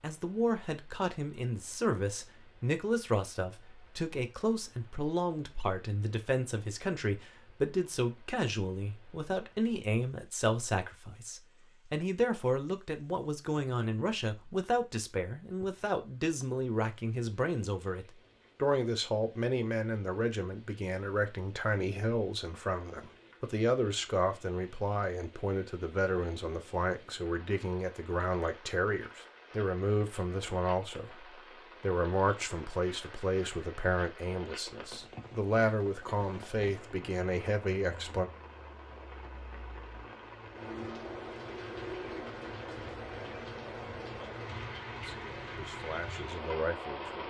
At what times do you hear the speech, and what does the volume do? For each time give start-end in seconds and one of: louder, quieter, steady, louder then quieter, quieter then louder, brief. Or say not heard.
0.0-38.3 steady
45.0-47.2 brief.